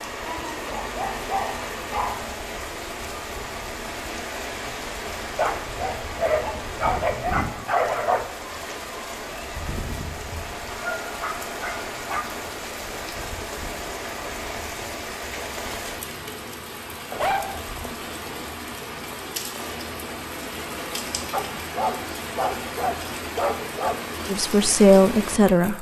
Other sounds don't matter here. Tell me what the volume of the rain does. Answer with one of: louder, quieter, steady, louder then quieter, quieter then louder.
steady.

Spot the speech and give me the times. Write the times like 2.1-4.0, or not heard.
24.2-25.7.